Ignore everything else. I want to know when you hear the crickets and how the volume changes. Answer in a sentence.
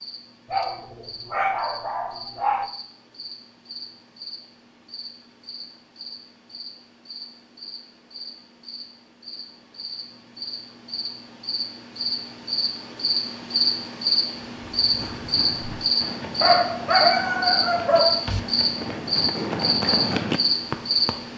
You can hear the crickets from 0.0 to 21.3 s, getting louder.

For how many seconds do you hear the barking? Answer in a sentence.
You can hear the barking for 4 seconds altogether.